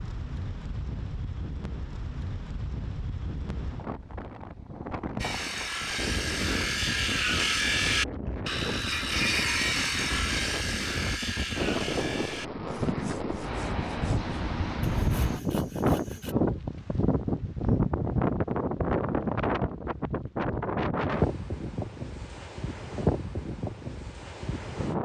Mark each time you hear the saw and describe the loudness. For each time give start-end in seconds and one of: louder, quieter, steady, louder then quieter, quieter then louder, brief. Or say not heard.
5.2-16.4 quieter.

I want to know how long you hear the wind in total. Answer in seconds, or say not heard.
25 s.